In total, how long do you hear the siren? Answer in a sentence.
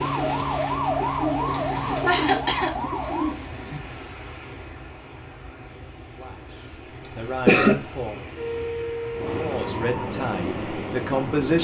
The siren can be heard for 5 seconds in total.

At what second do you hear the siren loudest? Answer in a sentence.
The volume of the siren peaks at 1 second.